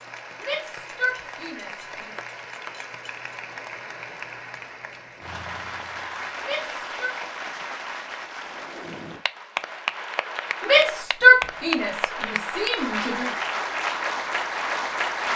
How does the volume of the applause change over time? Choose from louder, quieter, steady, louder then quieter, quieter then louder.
louder.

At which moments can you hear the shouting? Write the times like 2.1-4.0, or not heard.
0.4-2.1, 6.4-7.2, 10.6-13.3.